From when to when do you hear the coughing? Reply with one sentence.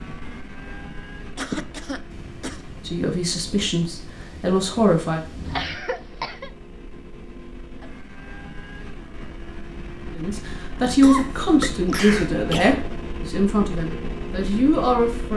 You can hear the coughing from 1.4 to 2.6 s, from 5.4 to 6.5 s and from 10.8 to 12.8 s.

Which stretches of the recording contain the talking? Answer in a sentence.
The talking can be heard from 2.9 to 5.2 s and from 10.2 to 15.3 s.